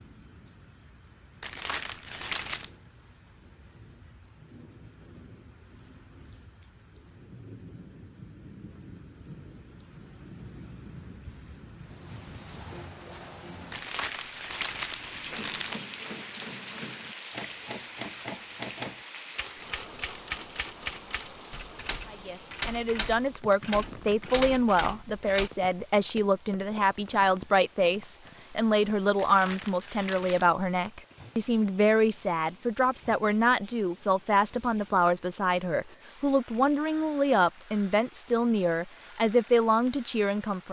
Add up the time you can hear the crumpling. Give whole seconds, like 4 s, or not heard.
5 s.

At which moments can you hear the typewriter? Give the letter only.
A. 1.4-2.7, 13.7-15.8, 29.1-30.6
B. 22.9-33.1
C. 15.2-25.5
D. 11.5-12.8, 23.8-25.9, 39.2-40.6
C.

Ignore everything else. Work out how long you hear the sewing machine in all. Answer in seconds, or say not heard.
not heard.